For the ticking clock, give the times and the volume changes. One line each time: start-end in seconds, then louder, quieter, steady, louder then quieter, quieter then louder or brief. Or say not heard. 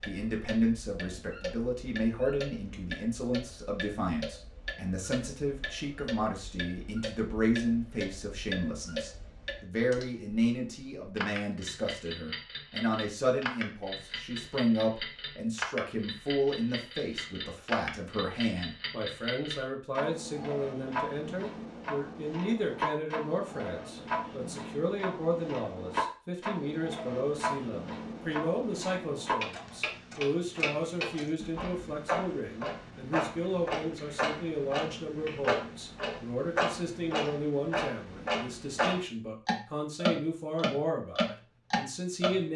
0.0-42.4 louder.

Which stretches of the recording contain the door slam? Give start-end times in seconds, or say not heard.
not heard.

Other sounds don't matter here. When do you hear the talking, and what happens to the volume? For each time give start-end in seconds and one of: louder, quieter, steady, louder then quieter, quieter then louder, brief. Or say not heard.
0.0-42.5 steady.